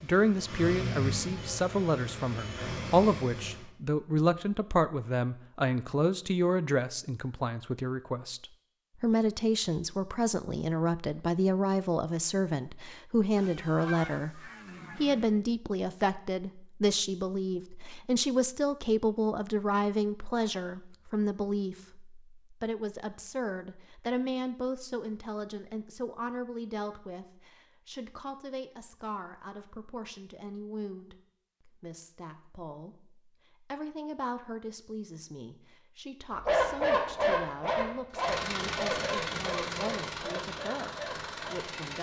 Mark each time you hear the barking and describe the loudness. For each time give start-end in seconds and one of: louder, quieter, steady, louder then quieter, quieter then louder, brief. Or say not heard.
36.3-41.7 quieter.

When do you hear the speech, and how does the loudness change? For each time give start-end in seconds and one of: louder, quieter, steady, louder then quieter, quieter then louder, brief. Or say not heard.
0.0-41.9 quieter.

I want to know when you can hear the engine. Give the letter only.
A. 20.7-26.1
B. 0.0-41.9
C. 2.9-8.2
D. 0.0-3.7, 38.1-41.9
D.